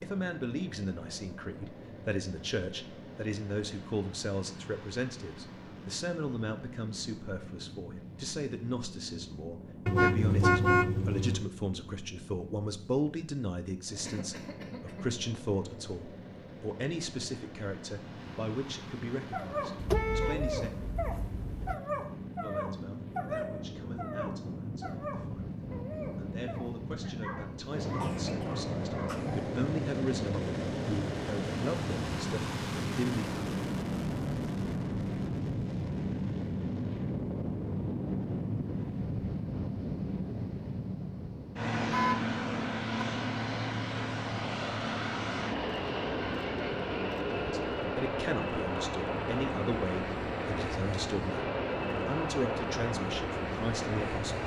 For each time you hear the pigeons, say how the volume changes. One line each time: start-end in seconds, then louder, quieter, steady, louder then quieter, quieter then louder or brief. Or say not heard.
not heard.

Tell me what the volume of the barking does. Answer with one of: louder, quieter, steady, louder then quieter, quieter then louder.
quieter.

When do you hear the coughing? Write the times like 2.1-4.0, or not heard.
14.0-15.1, 28.0-29.4.